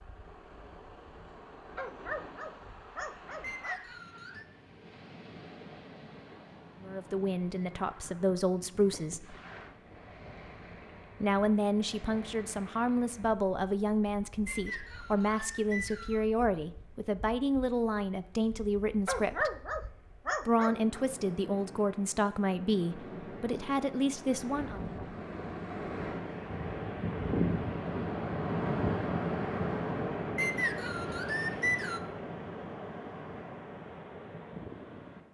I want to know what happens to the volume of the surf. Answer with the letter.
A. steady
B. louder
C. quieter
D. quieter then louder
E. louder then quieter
D.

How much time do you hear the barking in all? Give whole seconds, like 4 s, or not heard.
4 s.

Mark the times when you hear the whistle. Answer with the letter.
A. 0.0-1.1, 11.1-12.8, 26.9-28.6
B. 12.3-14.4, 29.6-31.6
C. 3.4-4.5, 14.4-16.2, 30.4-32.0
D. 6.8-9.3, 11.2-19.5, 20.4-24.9
C.